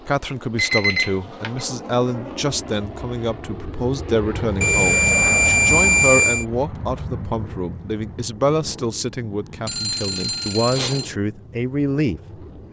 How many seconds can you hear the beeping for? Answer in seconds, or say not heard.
4 s.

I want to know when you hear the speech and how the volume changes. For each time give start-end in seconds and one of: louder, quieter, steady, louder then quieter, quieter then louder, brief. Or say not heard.
0.1-12.6 steady.